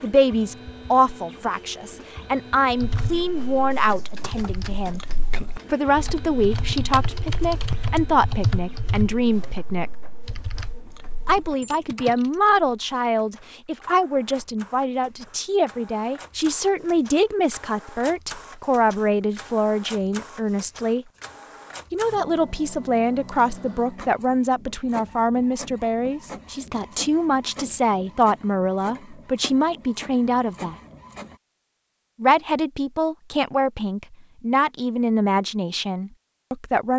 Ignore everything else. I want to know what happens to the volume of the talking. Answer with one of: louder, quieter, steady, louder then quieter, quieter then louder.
steady.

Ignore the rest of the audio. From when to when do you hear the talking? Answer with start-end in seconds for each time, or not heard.
0.0-5.0, 5.7-9.9, 11.2-21.1, 21.9-30.8, 32.2-36.9.